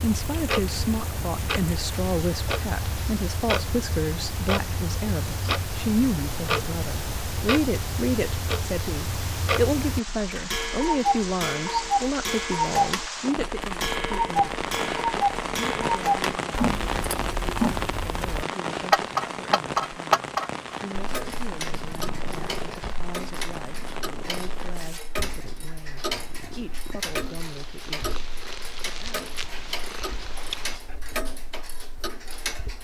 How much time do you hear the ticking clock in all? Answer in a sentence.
You can hear the ticking clock for 33 seconds altogether.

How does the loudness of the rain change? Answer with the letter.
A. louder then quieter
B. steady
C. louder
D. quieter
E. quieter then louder
A.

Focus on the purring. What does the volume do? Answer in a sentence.
The loudness of the purring goes down, then up.